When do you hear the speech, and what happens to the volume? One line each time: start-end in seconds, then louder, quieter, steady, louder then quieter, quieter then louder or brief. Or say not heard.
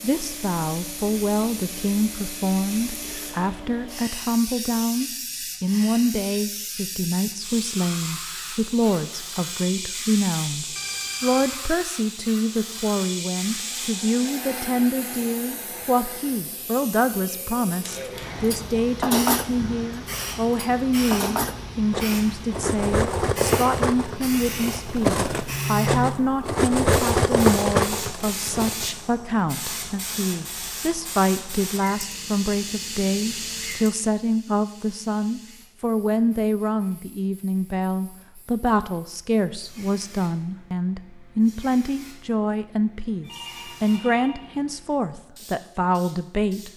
0.0-46.7 steady.